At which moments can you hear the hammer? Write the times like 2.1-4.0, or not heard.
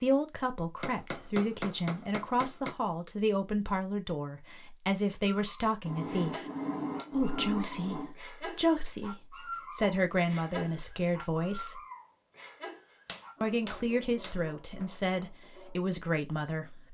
0.8-2.8, 5.8-8.2, 13.1-14.8.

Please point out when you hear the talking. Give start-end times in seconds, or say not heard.
0.0-6.5, 7.1-11.8, 13.4-16.8.